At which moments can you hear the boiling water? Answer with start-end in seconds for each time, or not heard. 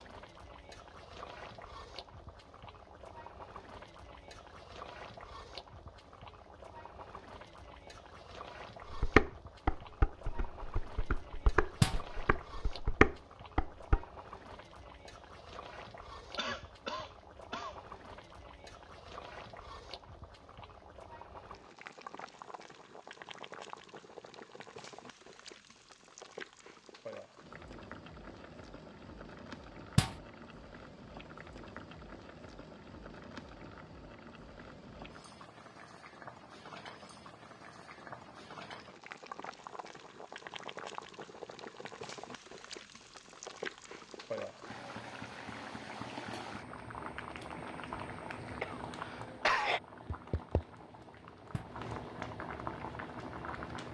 0.0-53.8.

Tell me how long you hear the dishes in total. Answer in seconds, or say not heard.
5 s.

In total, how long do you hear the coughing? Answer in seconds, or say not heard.
3 s.